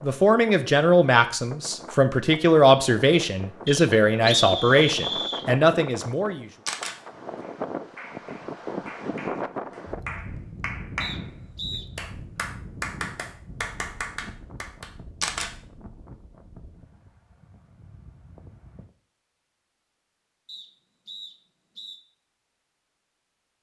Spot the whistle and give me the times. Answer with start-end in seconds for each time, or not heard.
3.6-5.5, 11.0-11.8, 20.4-22.0.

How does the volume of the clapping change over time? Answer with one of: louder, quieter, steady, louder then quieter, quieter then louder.
louder.